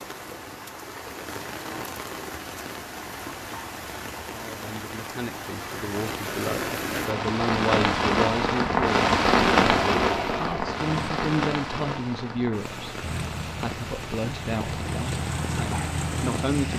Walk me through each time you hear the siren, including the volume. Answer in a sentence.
The siren can't be heard in this clip.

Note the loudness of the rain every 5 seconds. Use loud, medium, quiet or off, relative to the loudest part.
quiet, loud, medium, quiet.